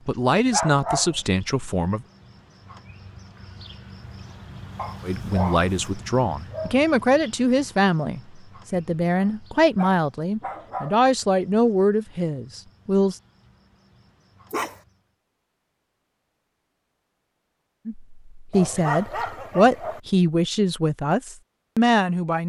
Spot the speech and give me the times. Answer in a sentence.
You can hear the speech from 0.1 to 2.0 s, from 5.0 to 13.2 s and from 17.9 to 22.4 s.